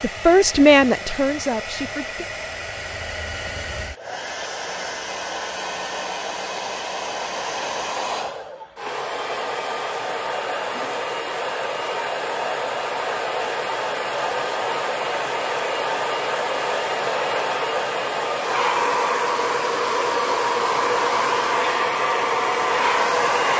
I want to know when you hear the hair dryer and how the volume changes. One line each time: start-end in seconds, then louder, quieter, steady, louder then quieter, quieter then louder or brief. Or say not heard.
0.0-23.5 louder.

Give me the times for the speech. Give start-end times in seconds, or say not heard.
0.0-2.2.